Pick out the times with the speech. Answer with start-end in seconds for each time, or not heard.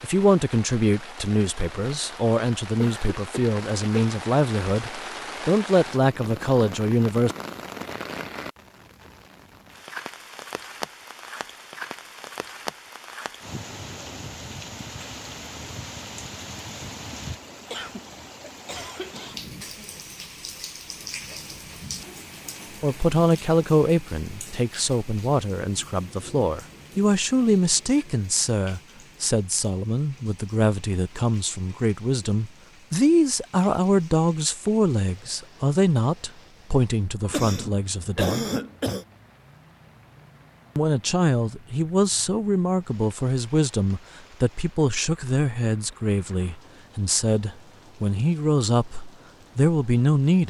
0.0-7.3, 22.8-38.5, 40.8-50.4.